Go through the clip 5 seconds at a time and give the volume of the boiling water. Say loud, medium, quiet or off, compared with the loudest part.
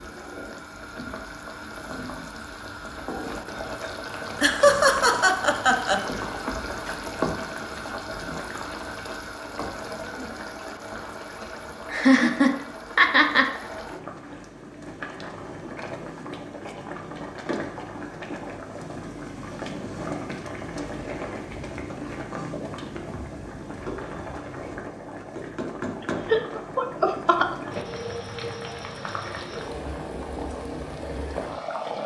loud, loud, medium, loud, loud, loud, loud.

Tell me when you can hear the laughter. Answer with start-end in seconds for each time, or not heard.
4.4-6.0, 11.9-13.5, 26.2-27.5.